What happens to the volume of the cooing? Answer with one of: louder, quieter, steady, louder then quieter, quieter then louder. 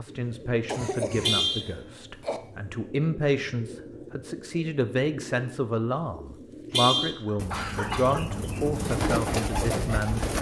louder.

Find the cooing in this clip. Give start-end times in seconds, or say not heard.
0.1-10.3.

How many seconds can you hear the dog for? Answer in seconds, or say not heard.
not heard.